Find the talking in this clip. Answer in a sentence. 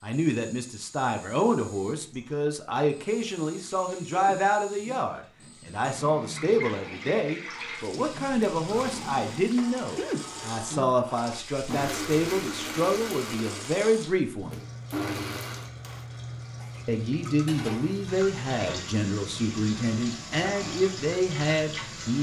The talking can be heard from 0.0 to 14.6 s and from 16.9 to 22.1 s.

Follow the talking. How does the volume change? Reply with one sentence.
The loudness of the talking stays about the same.